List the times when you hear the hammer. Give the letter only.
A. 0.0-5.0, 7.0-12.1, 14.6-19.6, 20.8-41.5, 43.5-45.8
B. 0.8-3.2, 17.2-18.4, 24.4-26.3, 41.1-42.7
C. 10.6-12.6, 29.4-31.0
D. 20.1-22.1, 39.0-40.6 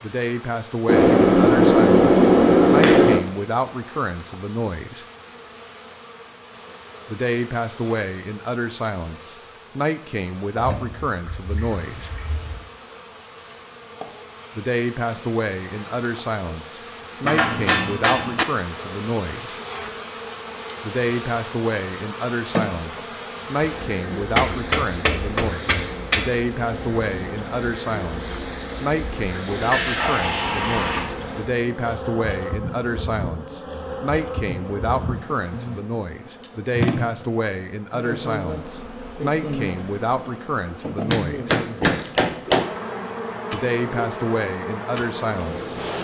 B.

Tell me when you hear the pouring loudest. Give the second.
30 s.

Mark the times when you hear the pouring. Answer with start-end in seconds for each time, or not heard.
10.6-12.6, 29.4-31.0.